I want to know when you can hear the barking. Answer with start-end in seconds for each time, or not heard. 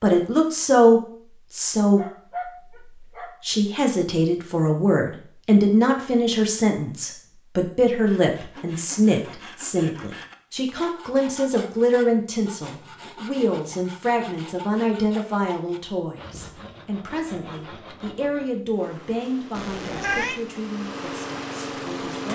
1.9-3.4.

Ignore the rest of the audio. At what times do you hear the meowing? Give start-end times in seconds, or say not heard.
19.6-20.4.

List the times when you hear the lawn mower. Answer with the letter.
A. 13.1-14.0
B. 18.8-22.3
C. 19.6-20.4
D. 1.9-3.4
B.